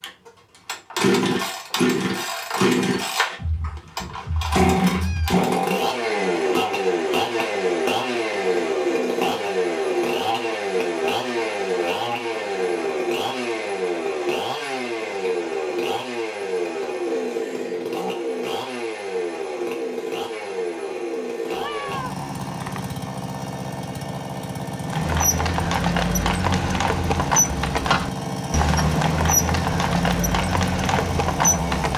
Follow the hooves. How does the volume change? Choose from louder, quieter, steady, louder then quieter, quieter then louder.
steady.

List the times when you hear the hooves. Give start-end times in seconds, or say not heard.
24.8-31.9.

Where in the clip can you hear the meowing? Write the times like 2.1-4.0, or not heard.
3.4-5.3, 21.5-22.9.